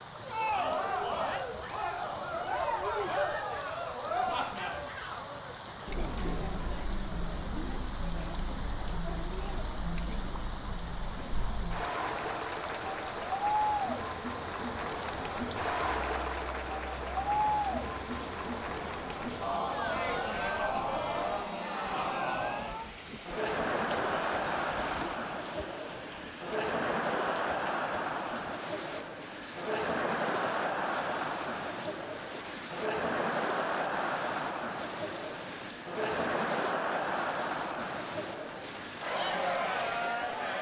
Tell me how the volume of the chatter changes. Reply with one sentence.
The loudness of the chatter stays about the same.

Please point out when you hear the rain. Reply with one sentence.
The rain can be heard from 0.0 to 40.5 s.